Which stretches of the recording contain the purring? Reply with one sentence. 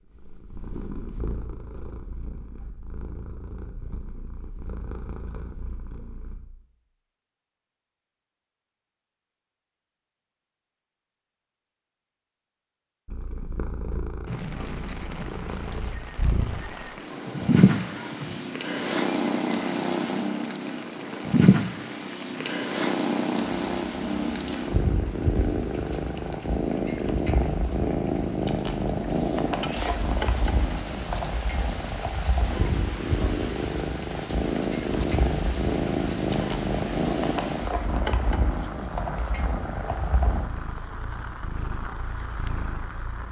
The purring can be heard from 0.1 to 6.4 s and from 13.1 to 43.2 s.